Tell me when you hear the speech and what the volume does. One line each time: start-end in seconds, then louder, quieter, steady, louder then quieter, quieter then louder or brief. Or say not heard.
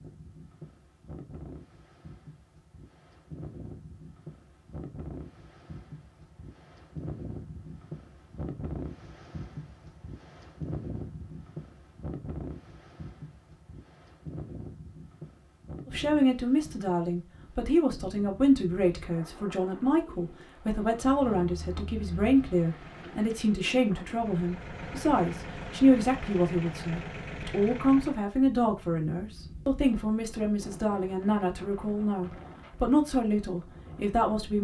15.8-34.6 steady.